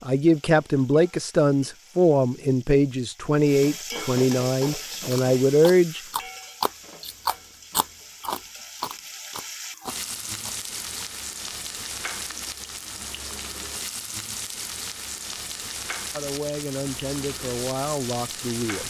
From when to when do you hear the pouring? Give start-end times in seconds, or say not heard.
not heard.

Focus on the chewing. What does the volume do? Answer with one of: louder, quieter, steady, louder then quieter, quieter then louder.
louder then quieter.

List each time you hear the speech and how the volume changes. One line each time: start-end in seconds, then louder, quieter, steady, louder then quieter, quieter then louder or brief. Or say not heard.
0.0-6.0 steady
16.1-18.8 brief.